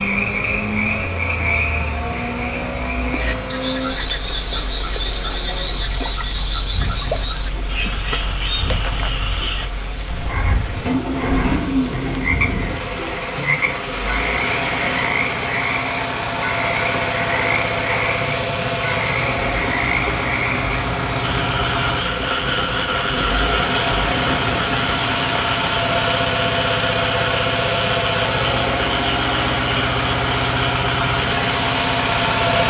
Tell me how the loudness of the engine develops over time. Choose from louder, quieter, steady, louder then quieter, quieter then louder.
louder.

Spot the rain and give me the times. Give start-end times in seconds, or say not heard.
0.0-26.1.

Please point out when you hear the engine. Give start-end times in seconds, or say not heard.
0.0-32.6.